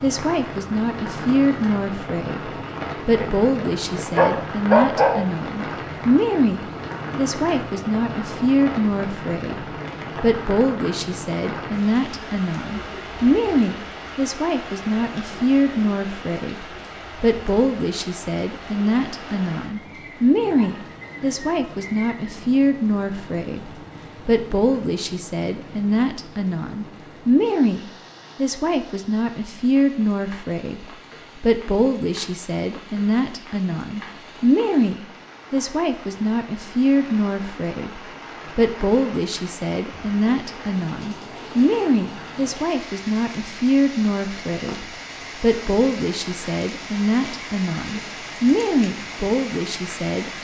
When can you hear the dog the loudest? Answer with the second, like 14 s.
5 s.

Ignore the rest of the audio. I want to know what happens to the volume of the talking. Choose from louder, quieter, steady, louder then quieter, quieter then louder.
steady.